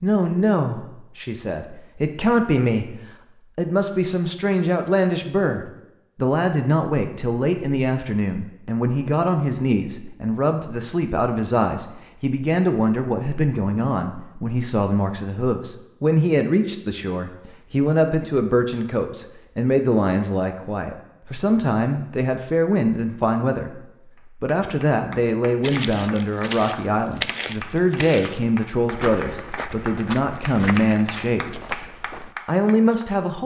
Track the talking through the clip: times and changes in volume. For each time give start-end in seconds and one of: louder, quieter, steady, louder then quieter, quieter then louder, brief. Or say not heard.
0.0-31.5 steady
32.5-33.4 brief.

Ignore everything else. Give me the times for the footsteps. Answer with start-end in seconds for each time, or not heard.
25.6-32.4.